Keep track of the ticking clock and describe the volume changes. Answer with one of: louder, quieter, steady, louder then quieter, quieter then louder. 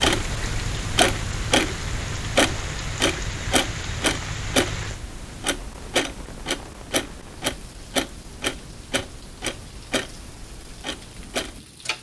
quieter.